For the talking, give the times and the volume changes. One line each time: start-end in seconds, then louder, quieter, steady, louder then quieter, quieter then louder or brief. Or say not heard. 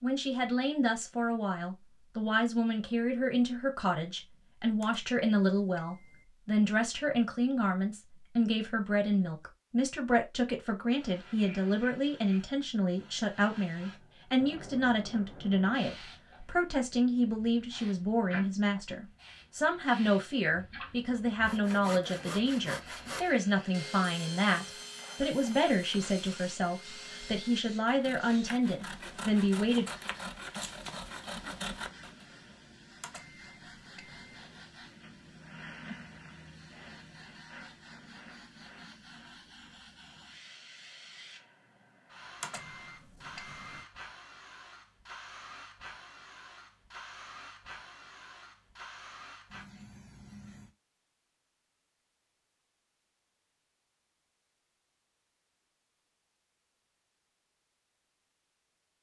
0.0-29.9 steady.